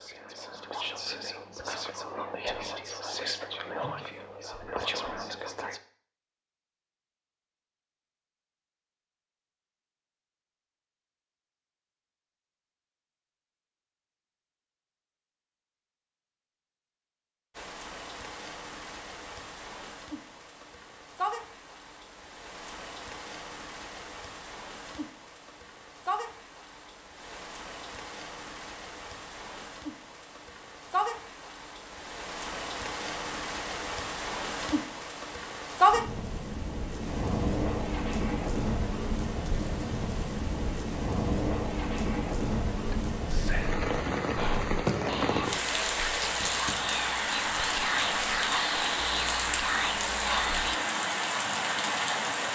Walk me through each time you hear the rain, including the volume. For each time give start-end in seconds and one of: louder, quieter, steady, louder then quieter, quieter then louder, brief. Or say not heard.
17.5-52.4 louder.